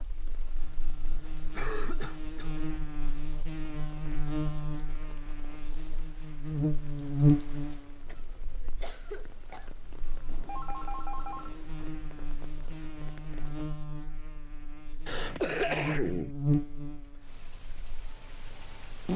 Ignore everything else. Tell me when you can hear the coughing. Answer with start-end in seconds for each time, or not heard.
1.5-2.5, 8.1-9.7, 15.1-16.3.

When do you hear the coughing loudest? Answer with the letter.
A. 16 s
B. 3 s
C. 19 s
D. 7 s
A.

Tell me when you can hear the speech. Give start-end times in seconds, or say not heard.
not heard.